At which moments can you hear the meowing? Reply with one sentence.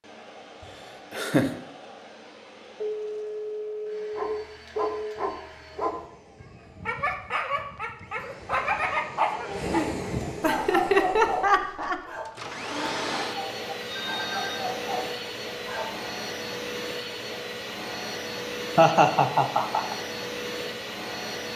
You can't hear the meowing here.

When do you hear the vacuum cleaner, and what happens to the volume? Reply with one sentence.
You can hear the vacuum cleaner from 0.0 to 21.5 s, getting louder.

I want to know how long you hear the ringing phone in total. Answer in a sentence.
The ringing phone can be heard for 3 seconds in total.